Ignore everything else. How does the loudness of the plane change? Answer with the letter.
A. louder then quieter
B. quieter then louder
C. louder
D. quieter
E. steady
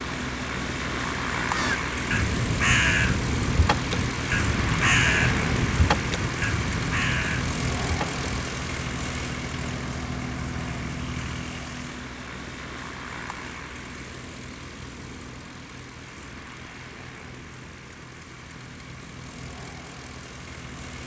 D.